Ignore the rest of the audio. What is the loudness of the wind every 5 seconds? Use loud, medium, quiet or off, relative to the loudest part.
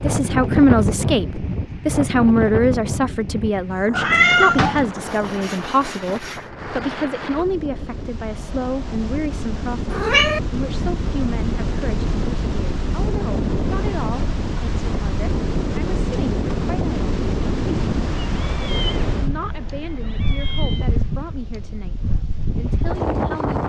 loud, medium, loud, loud, loud.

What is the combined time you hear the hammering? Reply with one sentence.
The hammering can't be heard in this clip.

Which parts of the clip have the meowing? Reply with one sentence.
The meowing can be heard from 3.9 to 4.9 s, from 9.9 to 10.4 s and from 18.4 to 20.9 s.